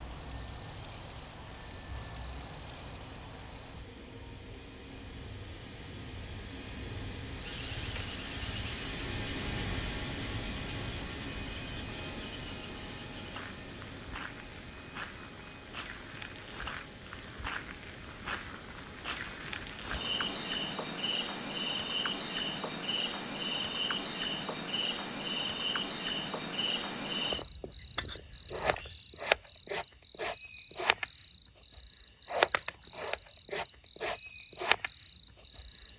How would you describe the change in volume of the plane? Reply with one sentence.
The volume of the plane goes up, then down.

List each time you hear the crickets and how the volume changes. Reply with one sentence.
The crickets can be heard from 0.0 to 35.9 s, getting quieter then louder.